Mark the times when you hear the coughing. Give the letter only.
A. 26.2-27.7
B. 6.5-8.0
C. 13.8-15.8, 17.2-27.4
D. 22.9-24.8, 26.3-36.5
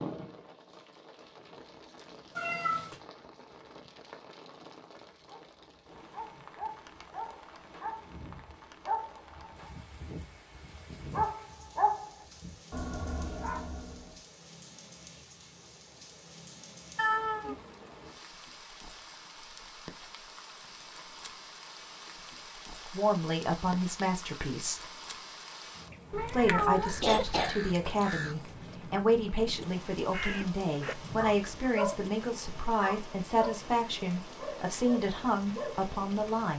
A.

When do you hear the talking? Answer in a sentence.
You can hear the talking from 22.9 to 24.8 s and from 26.3 to 36.5 s.